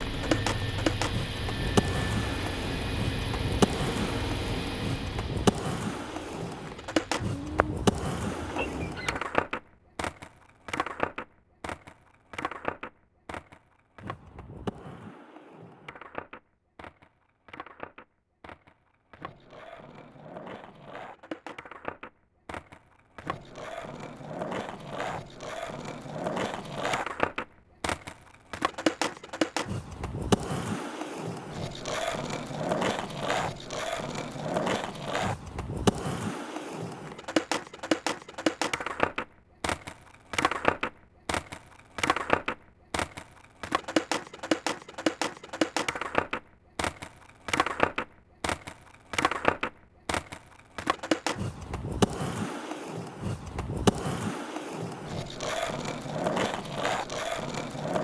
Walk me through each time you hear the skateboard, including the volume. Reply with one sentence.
You can hear the skateboard from 0.0 to 58.0 s, getting quieter then louder.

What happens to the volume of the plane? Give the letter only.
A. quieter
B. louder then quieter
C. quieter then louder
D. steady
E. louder
A.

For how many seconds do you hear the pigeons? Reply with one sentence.
You can hear the pigeons for 2 seconds altogether.